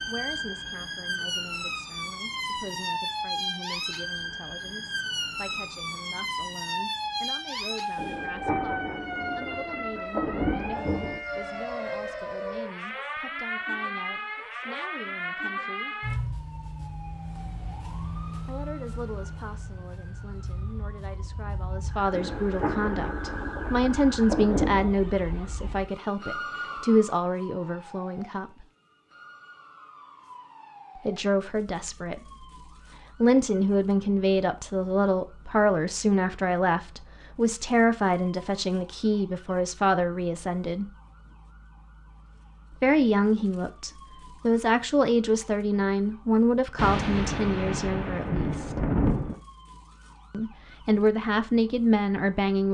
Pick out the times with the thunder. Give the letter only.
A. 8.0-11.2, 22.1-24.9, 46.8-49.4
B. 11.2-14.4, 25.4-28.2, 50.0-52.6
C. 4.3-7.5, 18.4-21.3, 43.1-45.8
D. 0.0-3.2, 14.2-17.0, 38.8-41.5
A.